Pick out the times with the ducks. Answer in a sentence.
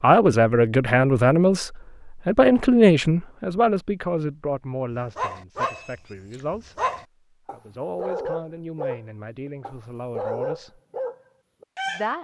You can't hear the ducks here.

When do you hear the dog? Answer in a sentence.
You can hear the dog from 5.0 to 12.1 s.